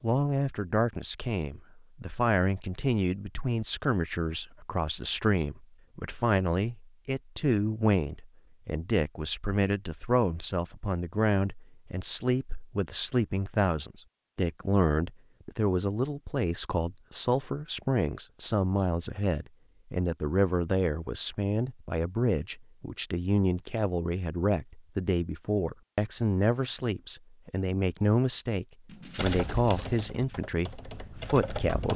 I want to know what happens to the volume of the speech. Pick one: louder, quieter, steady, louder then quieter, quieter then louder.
steady.